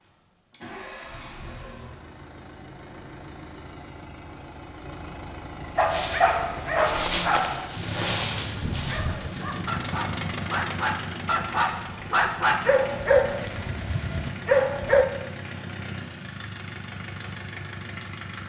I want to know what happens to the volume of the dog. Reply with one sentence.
The loudness of the dog goes down, then up.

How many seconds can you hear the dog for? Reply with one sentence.
You can hear the dog for 9 seconds altogether.